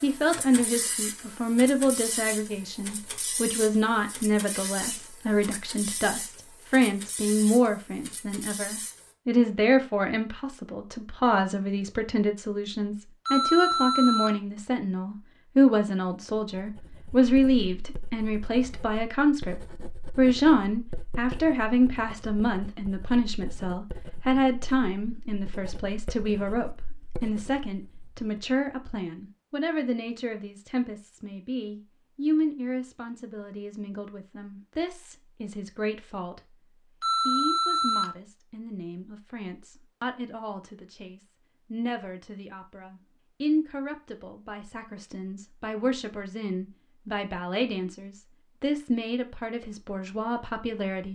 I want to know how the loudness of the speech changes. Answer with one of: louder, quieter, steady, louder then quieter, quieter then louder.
quieter.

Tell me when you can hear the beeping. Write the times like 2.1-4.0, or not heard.
13.2-14.3, 37.0-38.1.